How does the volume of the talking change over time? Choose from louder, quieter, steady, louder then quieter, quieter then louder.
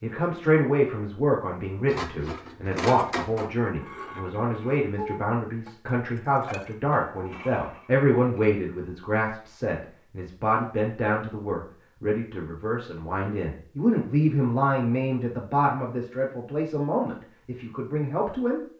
steady.